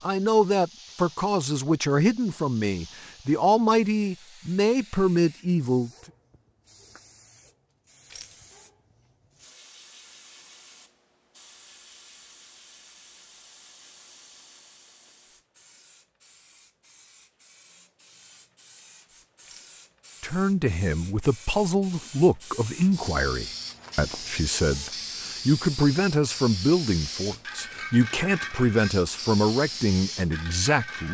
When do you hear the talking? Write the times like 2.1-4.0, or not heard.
0.0-5.9, 20.2-31.1.